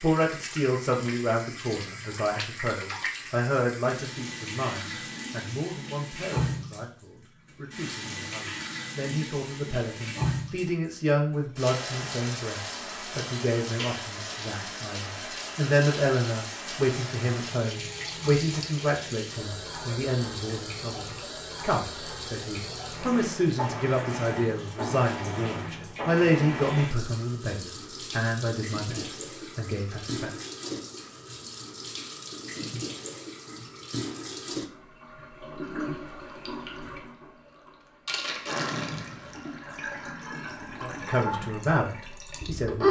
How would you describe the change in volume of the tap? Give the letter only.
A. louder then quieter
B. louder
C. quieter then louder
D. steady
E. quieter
D.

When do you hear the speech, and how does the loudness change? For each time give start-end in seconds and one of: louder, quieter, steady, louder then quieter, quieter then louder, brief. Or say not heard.
0.0-30.4 steady
40.8-42.8 brief.